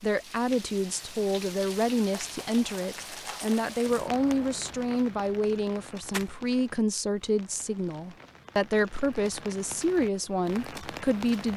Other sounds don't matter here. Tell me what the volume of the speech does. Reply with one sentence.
The volume of the speech stays about the same.